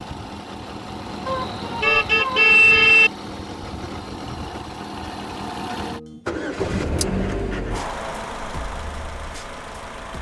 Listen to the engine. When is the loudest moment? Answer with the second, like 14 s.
7 s.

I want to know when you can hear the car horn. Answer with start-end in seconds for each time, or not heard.
1.2-3.1.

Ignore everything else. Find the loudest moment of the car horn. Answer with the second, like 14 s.
3 s.